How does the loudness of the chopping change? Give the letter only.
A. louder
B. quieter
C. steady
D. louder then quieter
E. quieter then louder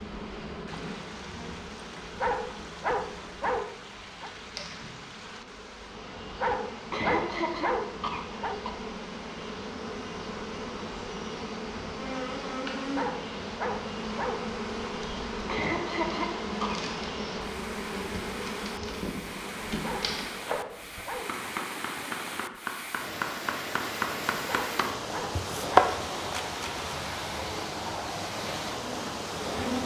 A.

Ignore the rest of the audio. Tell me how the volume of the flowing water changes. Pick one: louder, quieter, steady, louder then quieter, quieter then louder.
louder.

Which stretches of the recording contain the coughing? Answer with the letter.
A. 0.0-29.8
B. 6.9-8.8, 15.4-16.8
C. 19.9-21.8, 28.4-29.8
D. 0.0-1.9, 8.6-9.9
B.